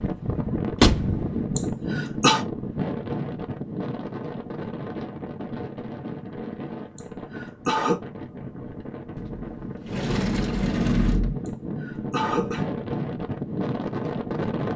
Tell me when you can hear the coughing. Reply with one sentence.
You can hear the coughing from 1.6 to 2.5 s, from 7.0 to 8.0 s and from 11.4 to 12.7 s.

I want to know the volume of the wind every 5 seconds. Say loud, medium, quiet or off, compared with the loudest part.
loud, medium, loud.